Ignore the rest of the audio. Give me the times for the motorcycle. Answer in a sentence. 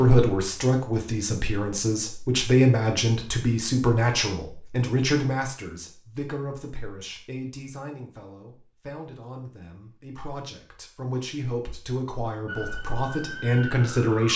You can't hear the motorcycle here.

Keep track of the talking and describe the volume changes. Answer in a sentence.
The loudness of the talking goes down, then up.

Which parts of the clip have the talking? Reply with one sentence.
The talking can be heard from 0.0 to 14.3 s.